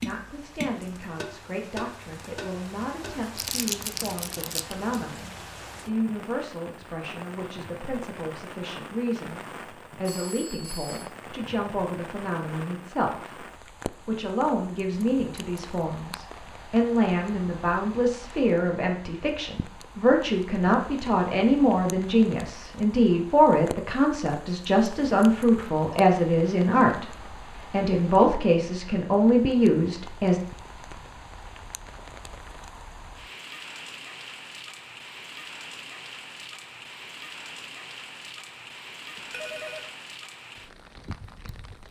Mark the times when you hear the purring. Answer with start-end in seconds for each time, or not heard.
not heard.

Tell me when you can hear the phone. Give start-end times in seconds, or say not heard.
10.1-11.1, 39.1-39.9.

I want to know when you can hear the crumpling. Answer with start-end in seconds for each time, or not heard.
3.4-4.8.